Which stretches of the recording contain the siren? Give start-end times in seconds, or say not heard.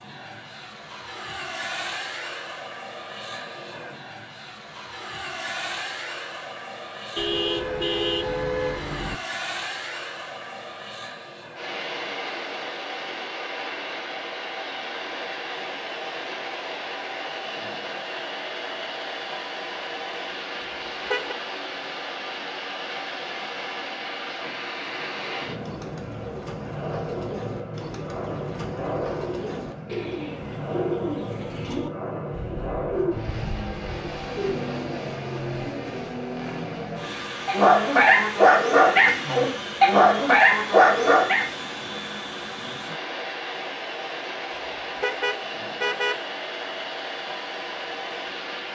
not heard.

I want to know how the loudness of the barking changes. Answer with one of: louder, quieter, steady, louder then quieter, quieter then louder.
louder.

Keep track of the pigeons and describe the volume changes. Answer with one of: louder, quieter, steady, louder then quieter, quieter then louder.
louder.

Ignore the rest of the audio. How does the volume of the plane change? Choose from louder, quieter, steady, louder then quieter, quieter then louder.
steady.